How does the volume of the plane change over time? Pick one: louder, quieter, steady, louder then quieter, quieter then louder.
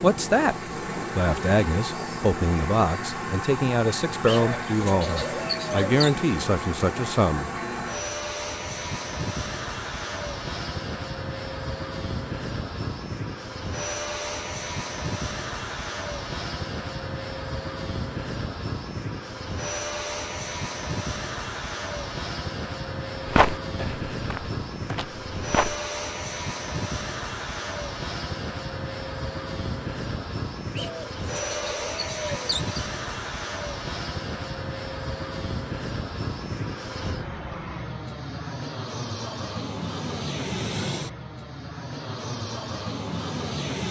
steady.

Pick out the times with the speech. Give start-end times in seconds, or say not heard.
0.0-0.6, 1.1-7.5.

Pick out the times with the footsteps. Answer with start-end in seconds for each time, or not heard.
23.2-25.8.